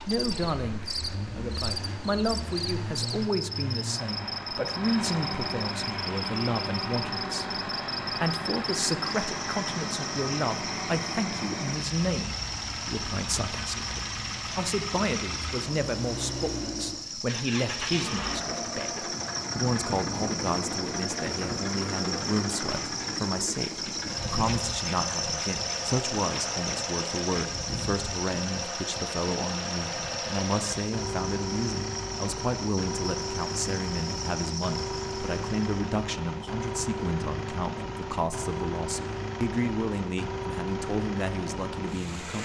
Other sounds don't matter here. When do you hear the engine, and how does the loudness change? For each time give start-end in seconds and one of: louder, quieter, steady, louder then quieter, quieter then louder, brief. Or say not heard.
0.0-42.4 steady.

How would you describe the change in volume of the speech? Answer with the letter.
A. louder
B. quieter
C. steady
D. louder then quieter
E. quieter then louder
C.